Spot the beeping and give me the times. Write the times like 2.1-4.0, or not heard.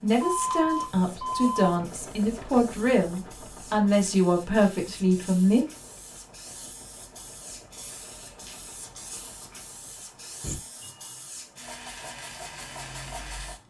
0.1-1.7, 10.4-11.2.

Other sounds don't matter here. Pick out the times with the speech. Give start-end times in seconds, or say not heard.
0.0-5.7.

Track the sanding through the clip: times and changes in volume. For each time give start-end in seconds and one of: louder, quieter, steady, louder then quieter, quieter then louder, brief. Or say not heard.
not heard.